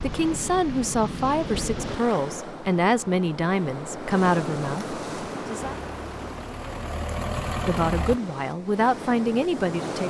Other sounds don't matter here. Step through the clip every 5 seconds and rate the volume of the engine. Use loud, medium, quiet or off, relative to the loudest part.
off, loud.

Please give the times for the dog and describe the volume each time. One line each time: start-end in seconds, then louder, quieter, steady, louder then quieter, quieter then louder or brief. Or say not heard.
not heard.